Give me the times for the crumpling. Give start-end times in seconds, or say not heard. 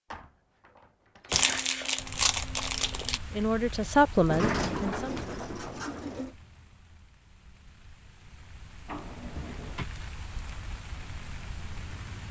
1.3-3.2.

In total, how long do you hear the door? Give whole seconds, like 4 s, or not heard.
5 s.